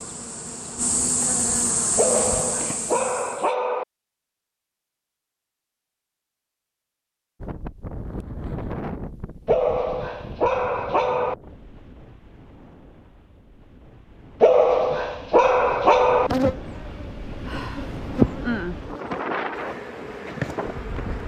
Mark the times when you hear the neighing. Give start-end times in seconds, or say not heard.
not heard.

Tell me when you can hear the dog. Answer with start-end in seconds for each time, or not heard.
1.9-3.9, 9.4-11.3, 14.4-16.3.